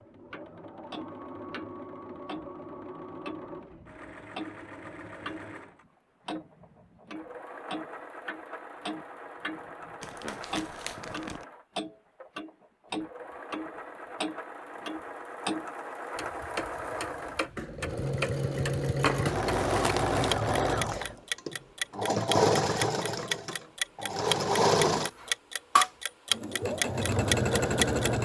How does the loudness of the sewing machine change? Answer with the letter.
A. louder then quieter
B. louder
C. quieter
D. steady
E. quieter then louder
B.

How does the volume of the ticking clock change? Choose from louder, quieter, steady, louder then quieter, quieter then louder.
louder.